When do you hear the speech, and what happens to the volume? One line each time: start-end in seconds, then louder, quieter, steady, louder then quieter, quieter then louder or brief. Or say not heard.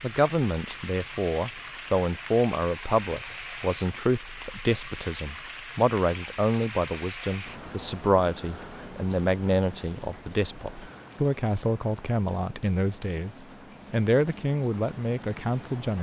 0.0-15.9 steady.